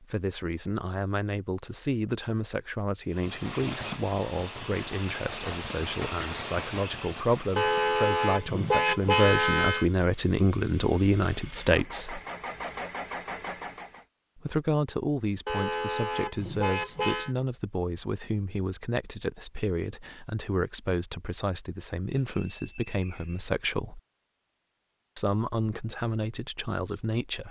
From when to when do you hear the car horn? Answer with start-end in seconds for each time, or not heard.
7.5-9.8, 15.4-17.3.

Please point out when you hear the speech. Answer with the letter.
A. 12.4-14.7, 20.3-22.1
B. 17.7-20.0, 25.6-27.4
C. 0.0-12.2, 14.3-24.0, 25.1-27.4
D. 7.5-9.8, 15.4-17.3
C.